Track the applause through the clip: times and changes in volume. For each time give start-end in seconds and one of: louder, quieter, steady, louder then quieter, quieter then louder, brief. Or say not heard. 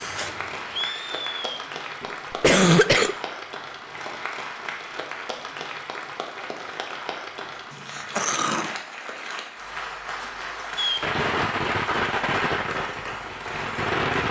0.0-14.2 steady.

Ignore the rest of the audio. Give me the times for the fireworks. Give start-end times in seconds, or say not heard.
0.0-1.6, 10.8-14.2.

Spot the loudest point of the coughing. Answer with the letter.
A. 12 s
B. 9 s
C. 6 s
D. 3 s
D.